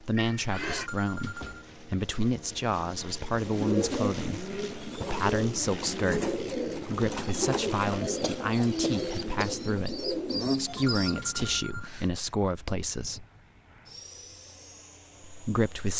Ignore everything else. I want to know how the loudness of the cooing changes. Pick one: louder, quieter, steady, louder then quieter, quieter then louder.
steady.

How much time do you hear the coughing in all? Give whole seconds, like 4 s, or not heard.
2 s.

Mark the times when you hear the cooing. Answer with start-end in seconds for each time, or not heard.
3.4-11.2.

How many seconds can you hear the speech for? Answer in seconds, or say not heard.
14 s.